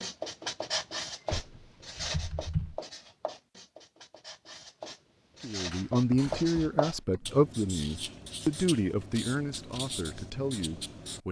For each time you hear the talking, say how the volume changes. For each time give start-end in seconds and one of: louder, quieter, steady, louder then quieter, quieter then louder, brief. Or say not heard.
5.4-11.2 quieter.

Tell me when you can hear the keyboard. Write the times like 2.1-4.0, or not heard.
1.3-2.8, 5.9-7.3.